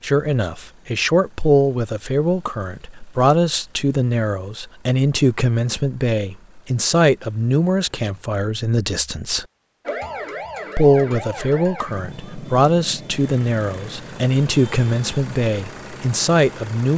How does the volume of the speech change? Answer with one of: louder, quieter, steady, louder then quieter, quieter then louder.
steady.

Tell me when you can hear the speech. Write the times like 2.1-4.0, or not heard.
0.0-9.4, 10.8-16.9.